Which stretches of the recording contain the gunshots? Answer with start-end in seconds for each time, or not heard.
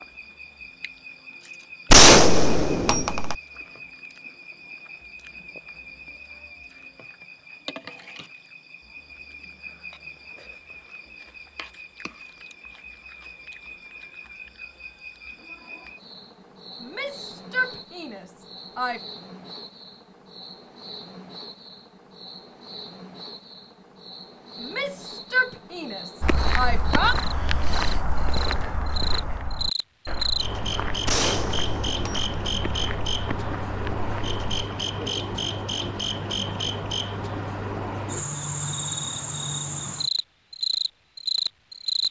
1.9-3.4, 31.1-32.3.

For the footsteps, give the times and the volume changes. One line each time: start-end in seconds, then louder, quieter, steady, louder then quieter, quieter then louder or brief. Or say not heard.
26.2-34.4 quieter.